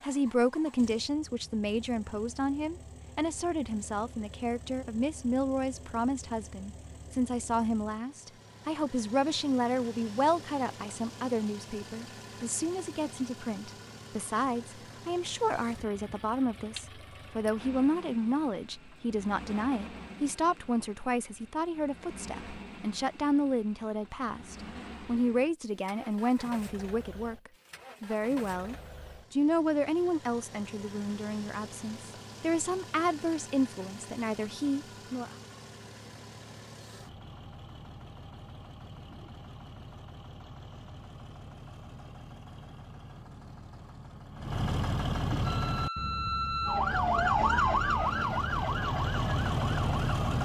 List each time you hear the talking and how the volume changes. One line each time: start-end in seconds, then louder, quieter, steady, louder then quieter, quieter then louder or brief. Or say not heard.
0.0-35.4 steady.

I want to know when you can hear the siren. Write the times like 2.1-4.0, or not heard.
45.4-50.3.